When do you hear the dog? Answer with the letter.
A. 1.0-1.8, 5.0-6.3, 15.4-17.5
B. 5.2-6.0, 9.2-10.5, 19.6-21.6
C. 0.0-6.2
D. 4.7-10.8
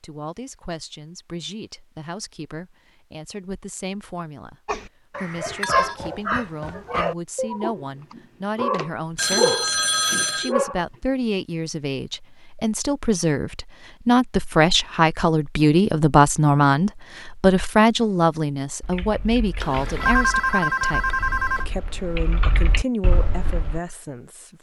D.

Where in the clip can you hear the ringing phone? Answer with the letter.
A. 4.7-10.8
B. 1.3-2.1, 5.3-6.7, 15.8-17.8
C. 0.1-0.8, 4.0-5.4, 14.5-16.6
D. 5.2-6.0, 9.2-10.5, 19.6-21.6
D.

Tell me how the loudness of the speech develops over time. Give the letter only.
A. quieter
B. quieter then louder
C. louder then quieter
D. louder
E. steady
C.